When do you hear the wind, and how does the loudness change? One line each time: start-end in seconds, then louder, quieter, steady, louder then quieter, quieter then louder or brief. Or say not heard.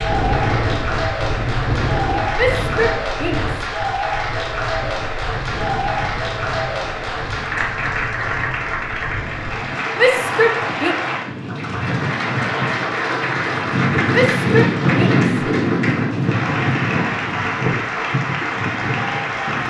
0.0-19.6 quieter then louder.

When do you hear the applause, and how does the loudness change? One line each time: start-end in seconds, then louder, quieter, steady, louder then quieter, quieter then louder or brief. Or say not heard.
0.0-19.6 steady.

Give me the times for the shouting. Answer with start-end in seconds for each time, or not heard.
2.4-3.6, 9.9-10.9, 14.1-15.3.